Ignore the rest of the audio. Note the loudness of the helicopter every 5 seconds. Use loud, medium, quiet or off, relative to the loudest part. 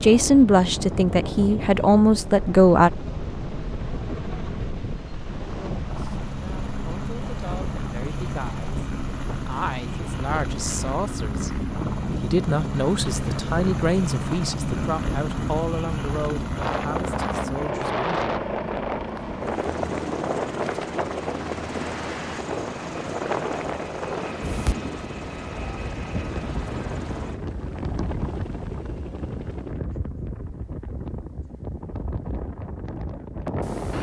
medium, loud, loud, loud, loud, medium, off.